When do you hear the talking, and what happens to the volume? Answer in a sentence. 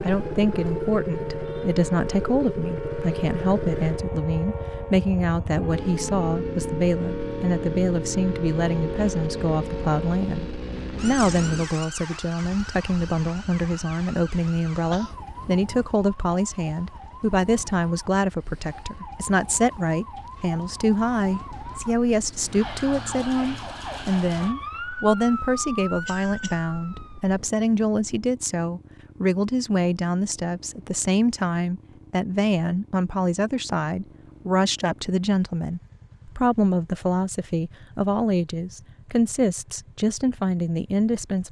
You can hear the talking from 0.0 to 41.4 s, at a steady volume.